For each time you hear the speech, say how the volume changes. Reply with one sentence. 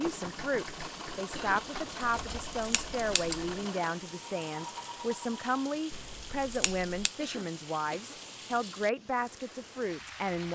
You can hear the speech from 0.0 to 10.5 s, at a steady volume.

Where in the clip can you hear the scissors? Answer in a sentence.
You can hear the scissors from 2.0 to 3.5 s and from 5.9 to 7.1 s.